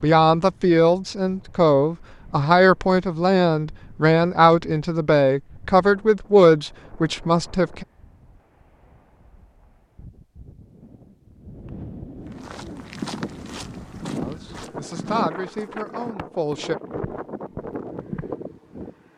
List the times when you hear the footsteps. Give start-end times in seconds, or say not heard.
12.2-18.2.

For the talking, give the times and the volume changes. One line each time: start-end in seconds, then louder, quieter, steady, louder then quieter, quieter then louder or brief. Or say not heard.
0.0-7.8 steady
14.2-16.8 brief.